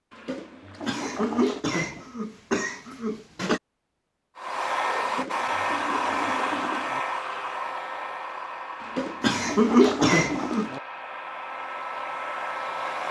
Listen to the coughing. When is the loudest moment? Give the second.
10 s.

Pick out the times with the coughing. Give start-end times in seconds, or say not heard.
0.8-3.6, 9.2-10.7.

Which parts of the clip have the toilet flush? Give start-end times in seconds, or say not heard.
0.1-1.6, 5.0-7.0, 8.8-10.8.